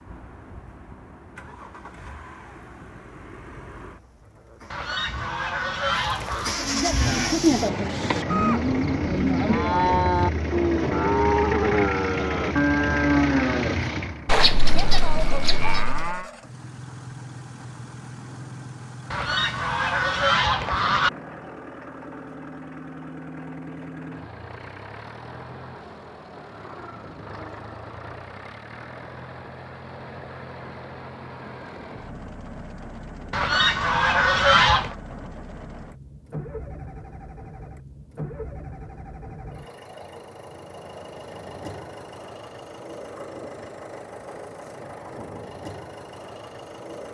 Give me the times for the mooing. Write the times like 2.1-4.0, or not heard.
6.5-16.2.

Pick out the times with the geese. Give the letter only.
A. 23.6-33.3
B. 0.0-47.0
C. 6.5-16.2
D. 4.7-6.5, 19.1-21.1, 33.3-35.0
D.